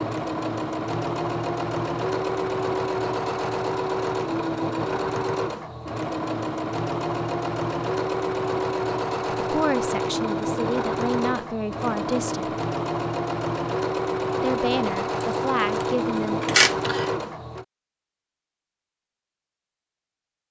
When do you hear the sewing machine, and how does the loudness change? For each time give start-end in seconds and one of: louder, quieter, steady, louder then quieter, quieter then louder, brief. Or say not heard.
0.0-17.6 steady.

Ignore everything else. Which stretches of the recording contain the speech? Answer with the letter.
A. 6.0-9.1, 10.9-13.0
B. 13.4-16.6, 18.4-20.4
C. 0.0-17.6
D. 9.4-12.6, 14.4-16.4
D.